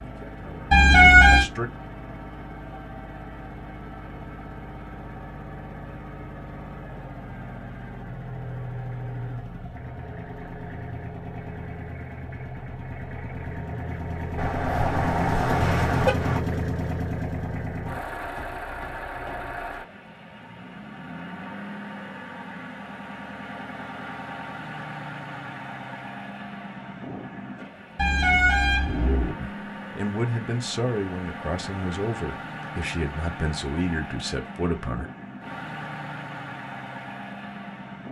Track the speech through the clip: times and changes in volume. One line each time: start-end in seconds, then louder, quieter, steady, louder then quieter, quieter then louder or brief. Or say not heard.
0.0-1.7 brief
29.4-35.1 steady.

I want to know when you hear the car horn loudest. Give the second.
1 s.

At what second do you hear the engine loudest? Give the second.
16 s.